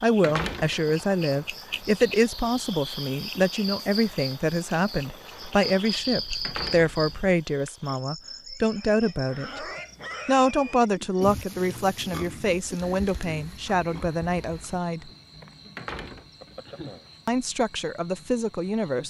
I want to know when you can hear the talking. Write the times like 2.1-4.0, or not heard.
0.0-9.7, 10.2-15.1, 17.2-19.0.